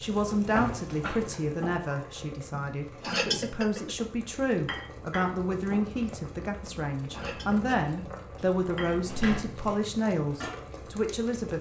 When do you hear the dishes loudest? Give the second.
3 s.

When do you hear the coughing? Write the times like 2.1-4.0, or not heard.
not heard.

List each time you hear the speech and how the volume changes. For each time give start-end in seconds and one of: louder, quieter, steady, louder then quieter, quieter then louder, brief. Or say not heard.
0.0-11.5 steady.